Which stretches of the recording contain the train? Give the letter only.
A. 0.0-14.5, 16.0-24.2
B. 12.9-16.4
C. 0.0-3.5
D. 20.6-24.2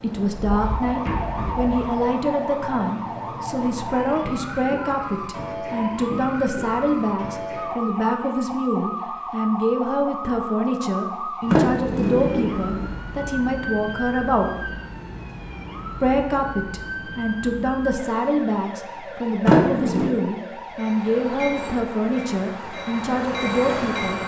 D.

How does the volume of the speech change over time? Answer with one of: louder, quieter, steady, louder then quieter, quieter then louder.
steady.